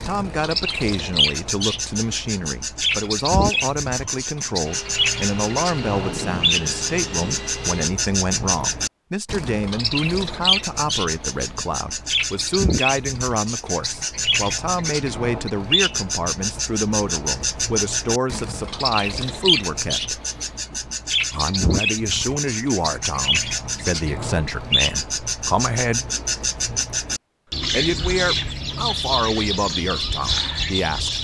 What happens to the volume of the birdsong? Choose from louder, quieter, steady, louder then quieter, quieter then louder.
steady.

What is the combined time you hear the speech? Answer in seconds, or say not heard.
28 s.